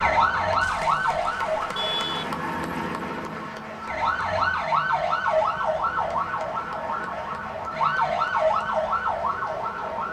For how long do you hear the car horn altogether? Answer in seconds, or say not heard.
2 s.